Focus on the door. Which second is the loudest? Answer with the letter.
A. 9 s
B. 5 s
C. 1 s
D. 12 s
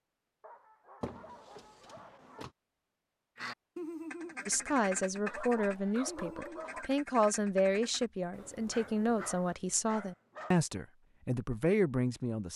C.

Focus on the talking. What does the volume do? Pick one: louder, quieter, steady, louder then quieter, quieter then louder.
steady.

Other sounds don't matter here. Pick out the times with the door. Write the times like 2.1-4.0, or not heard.
1.0-2.5.